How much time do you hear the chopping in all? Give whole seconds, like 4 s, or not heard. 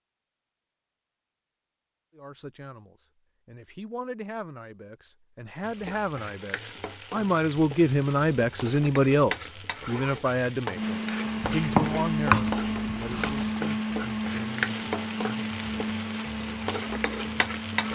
2 s.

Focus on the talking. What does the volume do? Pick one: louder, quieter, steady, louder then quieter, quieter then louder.
louder then quieter.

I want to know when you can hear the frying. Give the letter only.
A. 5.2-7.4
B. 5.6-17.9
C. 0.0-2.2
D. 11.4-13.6
B.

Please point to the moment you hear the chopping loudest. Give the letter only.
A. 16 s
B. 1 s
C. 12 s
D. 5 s
C.